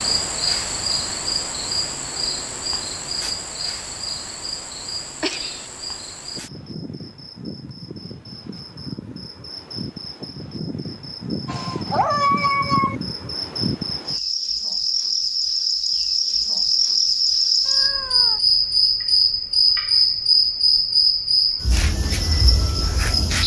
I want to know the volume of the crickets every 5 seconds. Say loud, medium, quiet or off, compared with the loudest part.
medium, quiet, medium, loud, loud.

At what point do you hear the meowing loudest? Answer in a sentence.
The volume of the meowing peaks at 12 seconds.